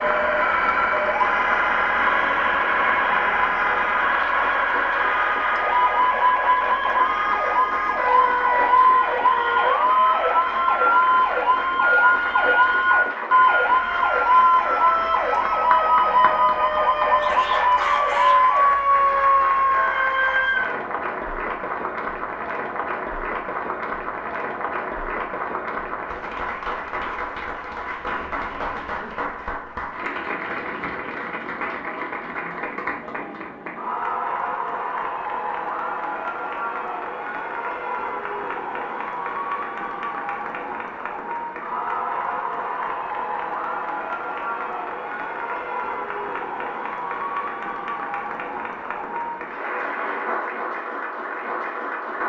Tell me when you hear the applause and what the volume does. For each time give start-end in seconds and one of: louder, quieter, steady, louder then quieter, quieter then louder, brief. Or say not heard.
0.0-52.2 steady.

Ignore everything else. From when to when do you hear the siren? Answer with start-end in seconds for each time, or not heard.
0.0-20.8.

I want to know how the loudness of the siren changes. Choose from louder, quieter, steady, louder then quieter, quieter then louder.
steady.